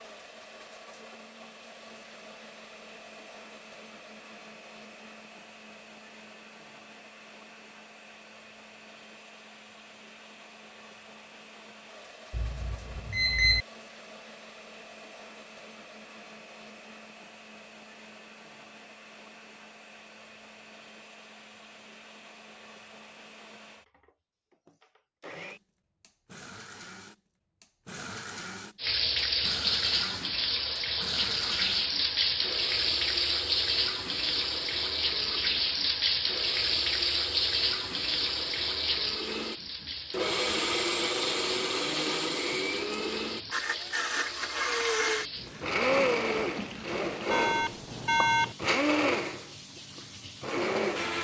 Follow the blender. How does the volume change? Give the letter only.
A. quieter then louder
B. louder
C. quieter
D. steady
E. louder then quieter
B.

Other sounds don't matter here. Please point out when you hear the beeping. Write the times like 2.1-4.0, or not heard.
12.3-13.7, 47.3-48.5.